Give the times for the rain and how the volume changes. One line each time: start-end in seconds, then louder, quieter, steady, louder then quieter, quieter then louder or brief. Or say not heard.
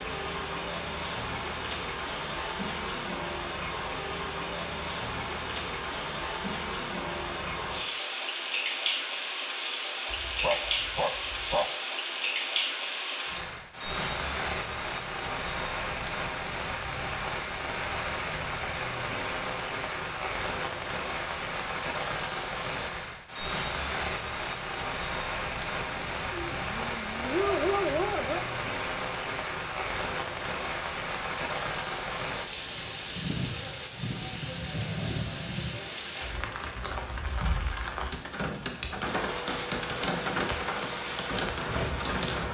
0.0-42.4 steady.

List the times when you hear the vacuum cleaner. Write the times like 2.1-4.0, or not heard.
39.0-42.4.